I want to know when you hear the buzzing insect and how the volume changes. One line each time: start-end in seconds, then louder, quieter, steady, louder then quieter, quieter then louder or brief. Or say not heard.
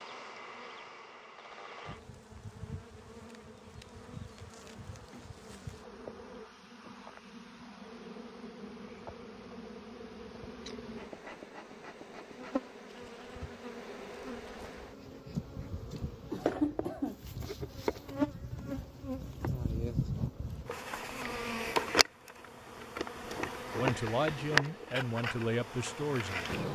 0.0-26.6 louder.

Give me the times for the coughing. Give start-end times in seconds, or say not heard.
15.9-17.3.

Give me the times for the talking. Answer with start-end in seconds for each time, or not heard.
23.8-26.5.